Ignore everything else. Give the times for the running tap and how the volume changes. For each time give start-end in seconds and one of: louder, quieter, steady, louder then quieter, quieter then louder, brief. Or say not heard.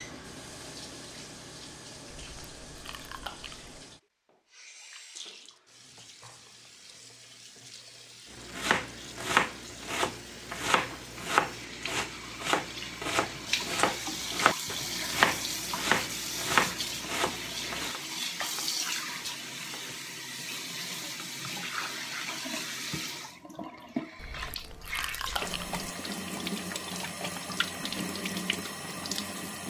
0.0-29.6 louder.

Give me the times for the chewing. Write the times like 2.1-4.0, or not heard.
2.1-3.8, 24.1-25.9.